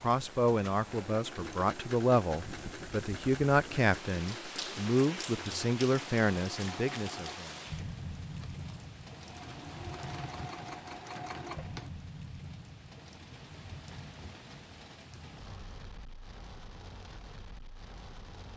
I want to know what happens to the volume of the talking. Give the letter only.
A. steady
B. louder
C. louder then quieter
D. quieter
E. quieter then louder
A.